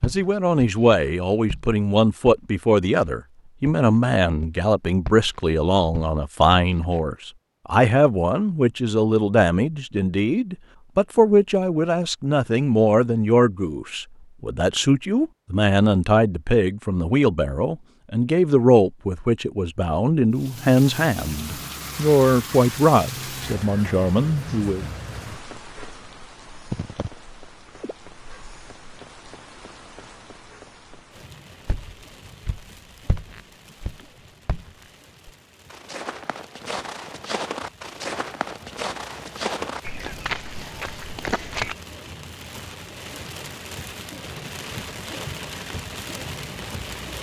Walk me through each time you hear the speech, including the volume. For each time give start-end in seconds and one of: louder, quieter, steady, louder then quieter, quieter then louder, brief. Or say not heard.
0.0-24.9 steady.